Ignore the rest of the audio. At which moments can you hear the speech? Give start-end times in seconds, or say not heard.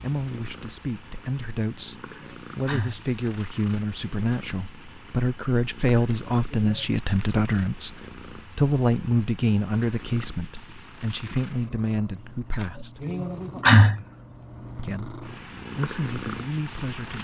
0.0-8.0, 8.6-13.1, 14.8-17.1.